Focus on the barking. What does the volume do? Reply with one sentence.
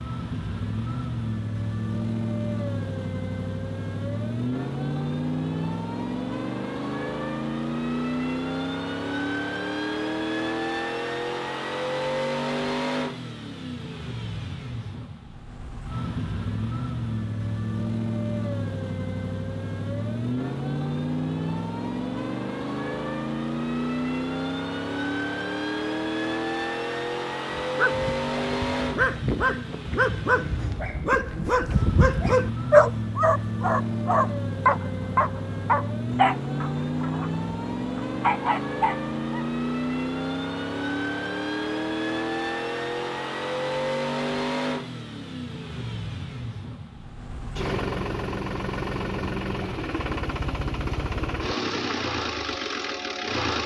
The loudness of the barking goes up, then down.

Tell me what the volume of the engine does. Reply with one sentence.
The loudness of the engine stays about the same.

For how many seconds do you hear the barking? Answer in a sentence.
You can hear the barking for 12 seconds altogether.